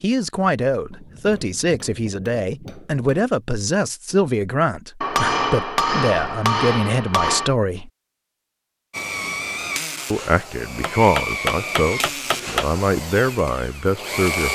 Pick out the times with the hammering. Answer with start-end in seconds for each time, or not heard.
0.9-3.3, 5.0-7.5, 10.8-12.7.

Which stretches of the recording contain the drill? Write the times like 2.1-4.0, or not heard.
8.9-14.5.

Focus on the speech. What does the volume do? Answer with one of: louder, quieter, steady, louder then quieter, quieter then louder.
steady.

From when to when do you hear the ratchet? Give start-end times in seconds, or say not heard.
not heard.